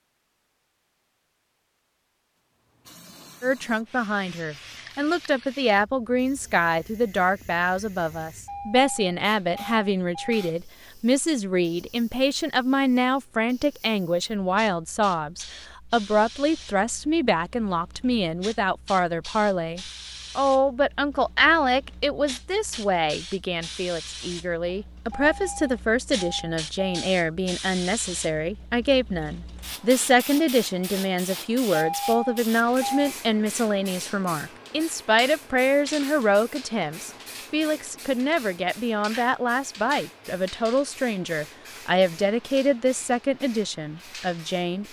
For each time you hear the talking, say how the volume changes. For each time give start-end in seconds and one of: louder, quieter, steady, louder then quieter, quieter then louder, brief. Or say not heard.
3.4-44.8 steady.